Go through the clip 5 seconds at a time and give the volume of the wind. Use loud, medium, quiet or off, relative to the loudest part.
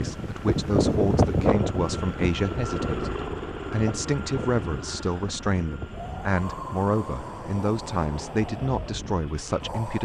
loud, medium.